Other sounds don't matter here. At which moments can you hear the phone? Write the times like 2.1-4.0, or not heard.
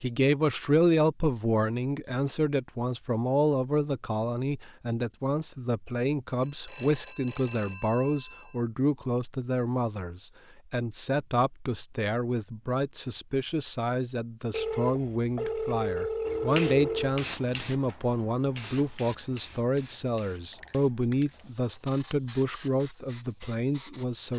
6.4-8.4, 14.5-17.1.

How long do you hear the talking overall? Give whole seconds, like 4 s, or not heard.
24 s.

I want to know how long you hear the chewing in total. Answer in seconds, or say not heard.
not heard.